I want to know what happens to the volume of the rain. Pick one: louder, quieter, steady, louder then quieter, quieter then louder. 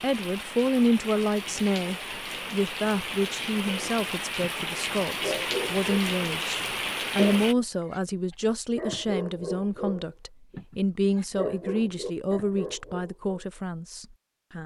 louder.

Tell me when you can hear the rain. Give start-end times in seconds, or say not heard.
0.0-7.5.